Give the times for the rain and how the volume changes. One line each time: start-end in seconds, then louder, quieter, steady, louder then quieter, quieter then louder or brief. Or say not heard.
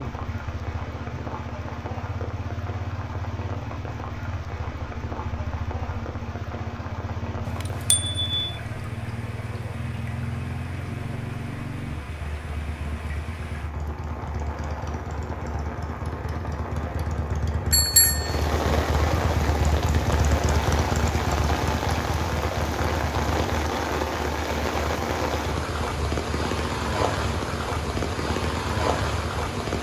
0.0-29.7 louder.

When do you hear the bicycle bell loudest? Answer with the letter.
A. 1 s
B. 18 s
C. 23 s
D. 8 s
B.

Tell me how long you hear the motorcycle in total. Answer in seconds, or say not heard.
30 s.